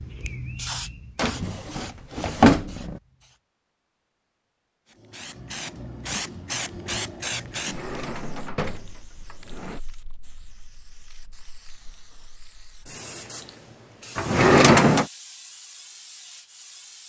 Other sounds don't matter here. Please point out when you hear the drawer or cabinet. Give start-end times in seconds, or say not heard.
1.1-3.0, 7.5-9.8, 14.2-15.1.